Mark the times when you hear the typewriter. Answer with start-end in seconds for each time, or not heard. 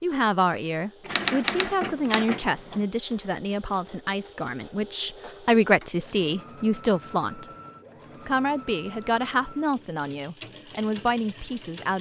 1.1-2.8.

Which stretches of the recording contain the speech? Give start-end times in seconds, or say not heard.
0.0-7.5, 8.2-11.9.